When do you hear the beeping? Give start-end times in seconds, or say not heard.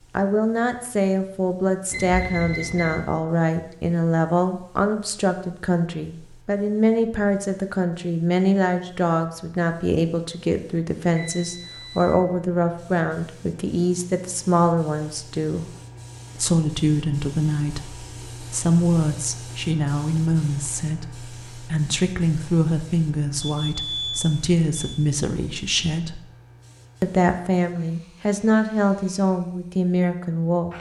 1.9-3.0, 11.2-12.2, 23.4-24.9.